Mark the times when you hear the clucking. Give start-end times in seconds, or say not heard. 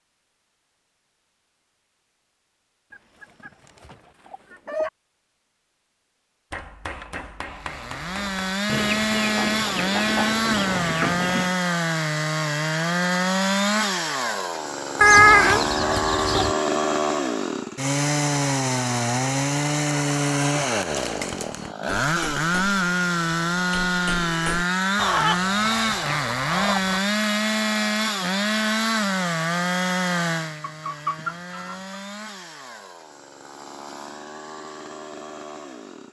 2.9-4.9, 8.7-11.6, 15.0-16.6, 24.9-27.0, 29.8-32.0.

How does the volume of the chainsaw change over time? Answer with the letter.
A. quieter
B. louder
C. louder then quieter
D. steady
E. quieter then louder
A.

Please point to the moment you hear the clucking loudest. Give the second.
15 s.